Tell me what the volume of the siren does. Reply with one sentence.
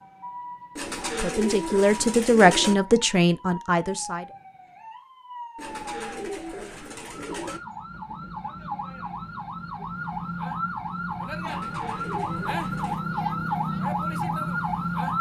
The volume of the siren goes up.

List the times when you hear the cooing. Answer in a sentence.
The cooing can be heard from 0.8 to 2.8 s, from 5.5 to 7.6 s and from 11.4 to 13.0 s.